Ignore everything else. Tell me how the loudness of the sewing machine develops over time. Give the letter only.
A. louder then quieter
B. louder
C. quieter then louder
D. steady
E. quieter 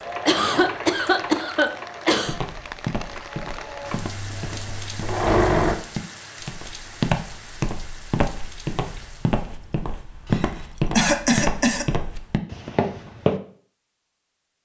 C.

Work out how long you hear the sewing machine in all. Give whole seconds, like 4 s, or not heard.
6 s.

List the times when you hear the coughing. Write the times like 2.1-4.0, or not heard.
0.2-2.4, 10.2-11.8.